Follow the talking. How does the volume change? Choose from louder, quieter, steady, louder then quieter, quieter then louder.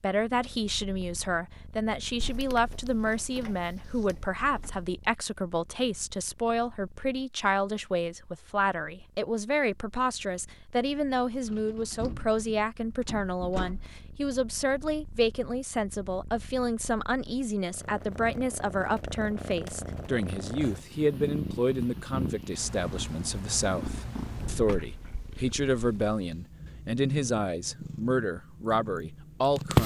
steady.